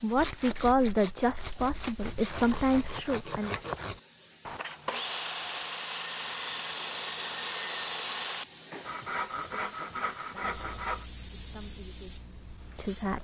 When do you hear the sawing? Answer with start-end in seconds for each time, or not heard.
0.1-11.1.